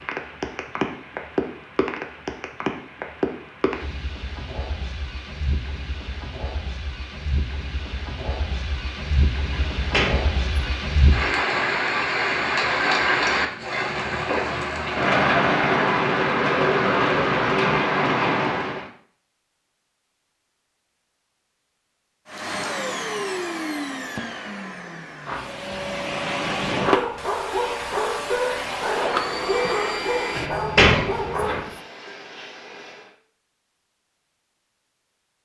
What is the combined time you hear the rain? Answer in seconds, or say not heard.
19 s.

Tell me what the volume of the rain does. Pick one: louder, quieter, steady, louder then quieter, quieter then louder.
quieter then louder.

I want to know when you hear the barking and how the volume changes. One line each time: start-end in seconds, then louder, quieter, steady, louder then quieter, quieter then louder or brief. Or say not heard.
26.8-31.9 steady.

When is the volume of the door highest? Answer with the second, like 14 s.
31 s.